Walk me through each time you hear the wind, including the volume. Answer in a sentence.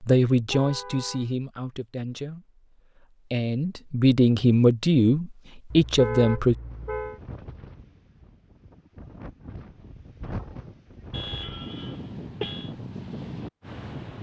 You can hear the wind from 6.6 to 14.1 s, getting louder.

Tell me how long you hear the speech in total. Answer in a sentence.
You can hear the speech for 6 seconds altogether.